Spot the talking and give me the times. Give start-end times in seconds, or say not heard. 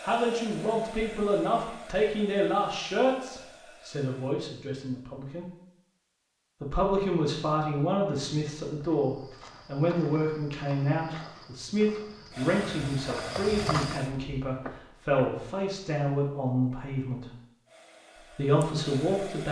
0.0-5.5, 6.6-17.2, 18.4-19.4.